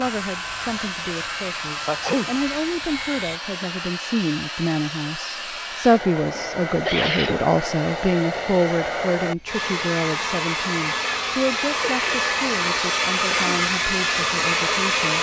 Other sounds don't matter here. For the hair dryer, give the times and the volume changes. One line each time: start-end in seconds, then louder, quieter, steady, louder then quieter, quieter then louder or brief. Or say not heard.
0.0-15.1 louder.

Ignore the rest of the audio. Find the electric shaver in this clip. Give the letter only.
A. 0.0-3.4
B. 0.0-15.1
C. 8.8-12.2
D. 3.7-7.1
A.